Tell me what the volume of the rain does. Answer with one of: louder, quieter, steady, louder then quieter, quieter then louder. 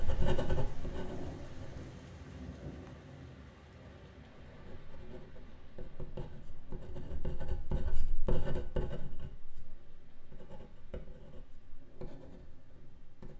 quieter.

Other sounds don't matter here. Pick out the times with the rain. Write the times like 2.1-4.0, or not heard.
0.0-13.3.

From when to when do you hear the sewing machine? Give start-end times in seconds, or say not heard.
not heard.